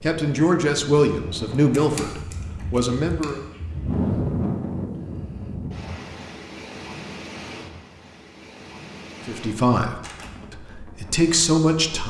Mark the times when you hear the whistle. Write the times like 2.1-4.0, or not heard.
not heard.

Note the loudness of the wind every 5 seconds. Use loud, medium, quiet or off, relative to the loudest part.
loud, medium, quiet.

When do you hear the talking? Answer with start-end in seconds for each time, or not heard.
0.0-3.4, 9.2-12.0.